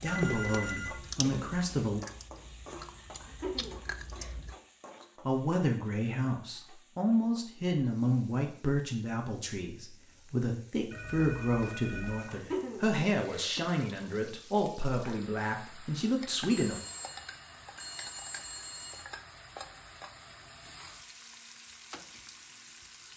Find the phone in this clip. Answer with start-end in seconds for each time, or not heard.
0.1-1.0, 10.9-12.3, 16.5-19.1.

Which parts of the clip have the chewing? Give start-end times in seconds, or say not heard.
0.0-4.5.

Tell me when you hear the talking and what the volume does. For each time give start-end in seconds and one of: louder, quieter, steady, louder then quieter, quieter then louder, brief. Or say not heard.
0.0-2.0 brief
5.2-16.8 steady.